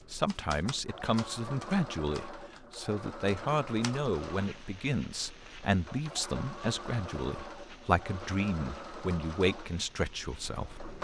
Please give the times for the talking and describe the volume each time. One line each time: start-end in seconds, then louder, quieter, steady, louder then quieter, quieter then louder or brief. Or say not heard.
0.1-10.8 steady.